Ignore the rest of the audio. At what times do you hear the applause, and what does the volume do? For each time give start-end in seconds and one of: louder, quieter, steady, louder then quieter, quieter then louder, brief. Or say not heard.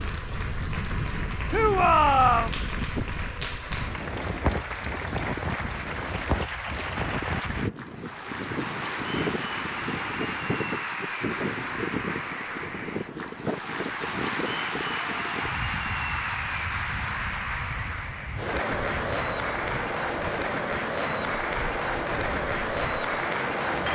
0.0-23.9 louder.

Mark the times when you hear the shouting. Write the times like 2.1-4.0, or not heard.
1.5-2.5.